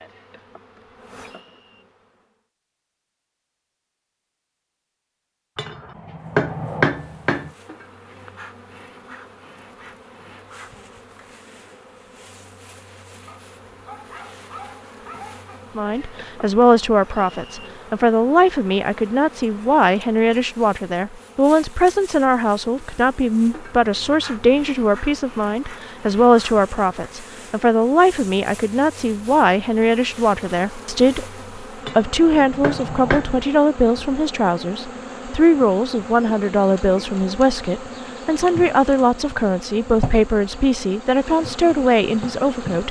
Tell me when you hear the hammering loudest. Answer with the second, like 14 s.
7 s.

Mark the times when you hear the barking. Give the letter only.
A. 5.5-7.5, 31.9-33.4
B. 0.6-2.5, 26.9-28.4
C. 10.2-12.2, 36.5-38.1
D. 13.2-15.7
D.